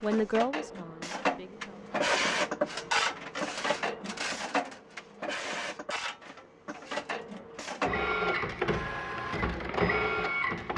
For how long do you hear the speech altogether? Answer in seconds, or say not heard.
2 s.